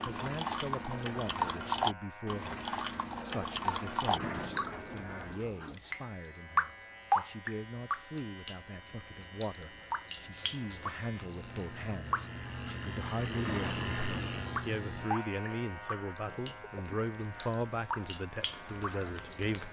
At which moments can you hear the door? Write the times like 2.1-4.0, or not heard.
4.0-5.8, 13.3-14.6.